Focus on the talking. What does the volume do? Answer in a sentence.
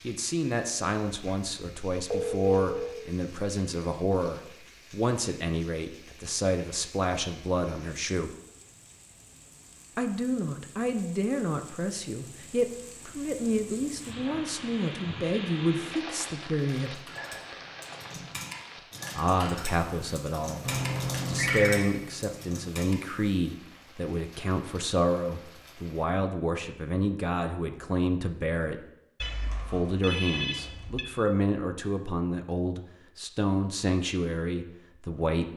The loudness of the talking stays about the same.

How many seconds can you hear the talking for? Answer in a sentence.
The talking can be heard for 31 seconds in total.